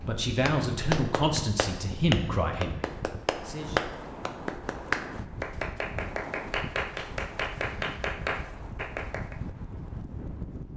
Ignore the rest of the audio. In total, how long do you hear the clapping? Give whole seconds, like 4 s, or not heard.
9 s.